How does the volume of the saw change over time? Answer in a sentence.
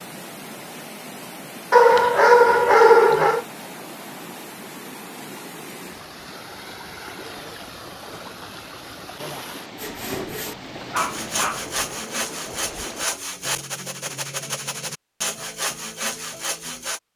The loudness of the saw stays about the same.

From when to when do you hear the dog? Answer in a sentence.
The dog can be heard from 1.7 to 3.5 s and from 10.4 to 11.7 s.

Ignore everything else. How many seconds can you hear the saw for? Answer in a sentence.
The saw can be heard for 7 seconds in total.